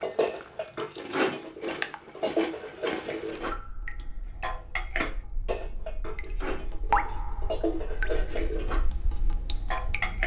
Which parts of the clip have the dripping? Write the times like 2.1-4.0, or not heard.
3.4-10.2.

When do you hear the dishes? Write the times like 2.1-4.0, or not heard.
0.0-3.6, 4.4-8.8, 9.7-10.2.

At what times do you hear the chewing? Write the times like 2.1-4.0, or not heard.
0.0-3.5.